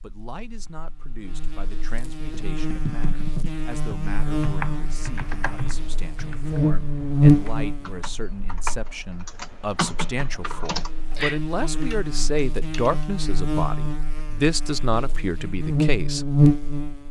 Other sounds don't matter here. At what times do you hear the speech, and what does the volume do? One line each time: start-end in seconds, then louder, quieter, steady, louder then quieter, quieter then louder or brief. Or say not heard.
0.0-16.3 louder.